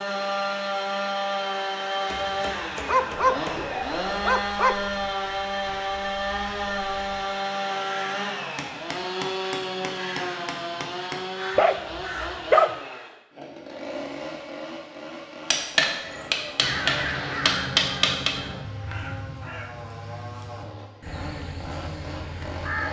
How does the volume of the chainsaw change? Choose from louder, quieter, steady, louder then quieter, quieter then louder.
quieter.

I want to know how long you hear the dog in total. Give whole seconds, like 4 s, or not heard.
3 s.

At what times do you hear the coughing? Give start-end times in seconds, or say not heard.
not heard.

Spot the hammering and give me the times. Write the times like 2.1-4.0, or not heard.
2.0-3.8, 8.6-11.2, 15.5-18.4.